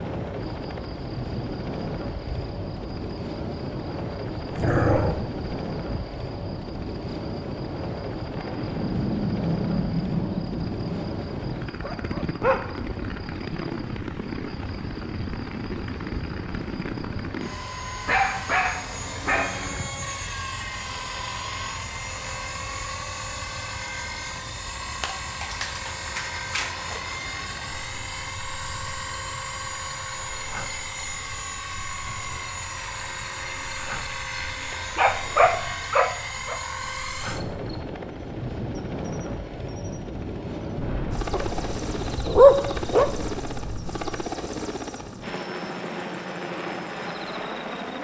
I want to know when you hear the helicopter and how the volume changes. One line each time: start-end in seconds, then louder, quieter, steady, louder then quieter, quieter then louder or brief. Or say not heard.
0.0-47.9 steady.